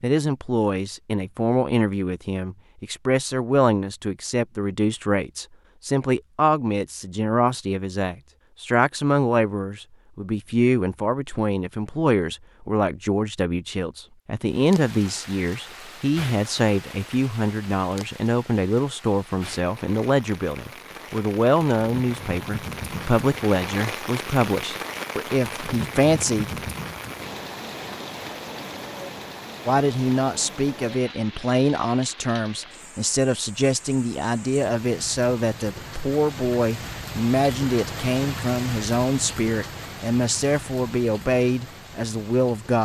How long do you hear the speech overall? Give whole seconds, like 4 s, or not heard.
40 s.